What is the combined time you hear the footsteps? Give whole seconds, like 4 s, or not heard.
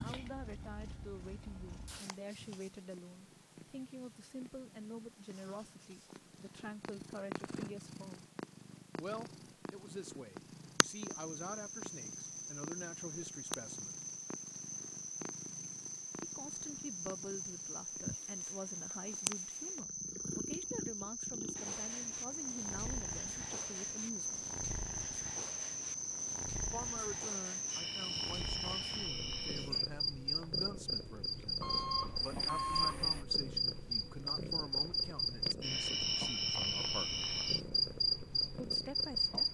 not heard.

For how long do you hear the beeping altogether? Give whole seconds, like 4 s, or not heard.
2 s.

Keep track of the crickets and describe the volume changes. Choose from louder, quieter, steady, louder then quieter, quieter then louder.
louder.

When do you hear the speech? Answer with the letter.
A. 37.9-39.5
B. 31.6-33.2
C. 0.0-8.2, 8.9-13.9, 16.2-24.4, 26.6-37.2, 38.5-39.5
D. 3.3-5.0
C.